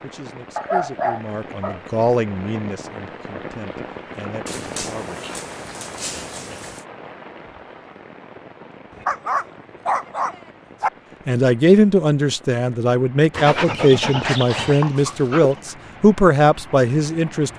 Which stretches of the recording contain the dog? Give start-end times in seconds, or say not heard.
0.6-1.8, 4.5-6.8, 8.9-10.9, 13.3-15.7.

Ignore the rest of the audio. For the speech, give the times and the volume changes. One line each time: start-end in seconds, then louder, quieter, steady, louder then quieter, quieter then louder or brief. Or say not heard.
0.0-5.3 louder then quieter
11.2-17.5 steady.